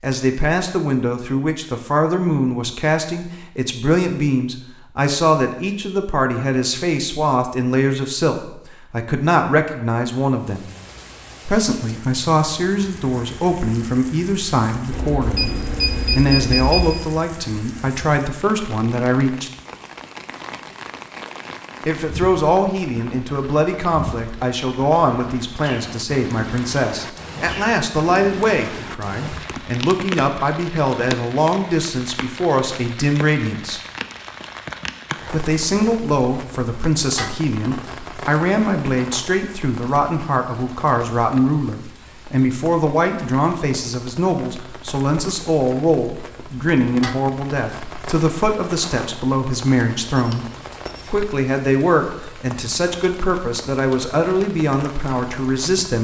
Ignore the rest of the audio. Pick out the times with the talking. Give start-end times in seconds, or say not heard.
0.0-10.7, 11.4-19.5, 21.9-33.8, 35.3-55.9.